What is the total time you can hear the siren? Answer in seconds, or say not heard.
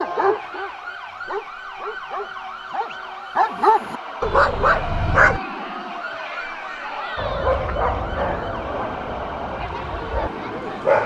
11 s.